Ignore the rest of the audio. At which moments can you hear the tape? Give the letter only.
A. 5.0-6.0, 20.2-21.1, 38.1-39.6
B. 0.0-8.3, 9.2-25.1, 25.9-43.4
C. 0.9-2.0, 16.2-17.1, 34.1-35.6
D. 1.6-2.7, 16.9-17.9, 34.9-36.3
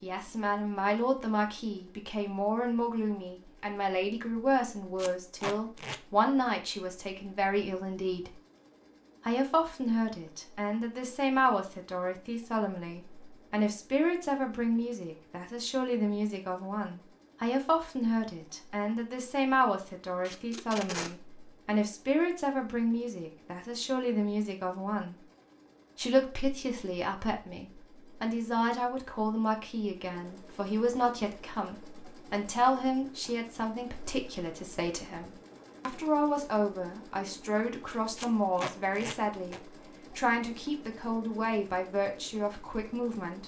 A.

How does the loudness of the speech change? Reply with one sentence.
The loudness of the speech stays about the same.